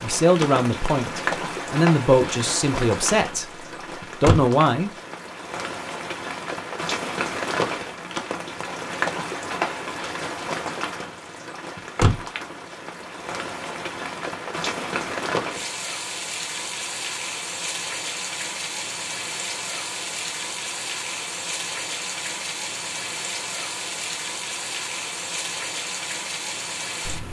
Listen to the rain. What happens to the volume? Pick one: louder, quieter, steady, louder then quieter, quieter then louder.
steady.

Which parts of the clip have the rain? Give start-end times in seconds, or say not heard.
0.0-27.2.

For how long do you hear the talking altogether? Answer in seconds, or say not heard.
5 s.